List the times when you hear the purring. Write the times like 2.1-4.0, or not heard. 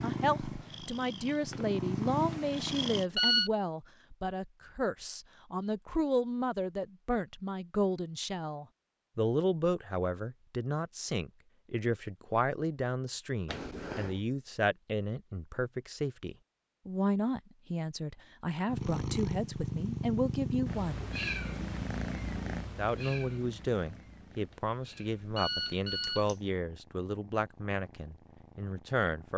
0.0-3.0, 18.6-29.3.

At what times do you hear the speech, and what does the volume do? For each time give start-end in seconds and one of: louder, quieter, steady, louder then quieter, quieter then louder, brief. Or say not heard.
0.0-21.1 steady
22.8-29.3 quieter.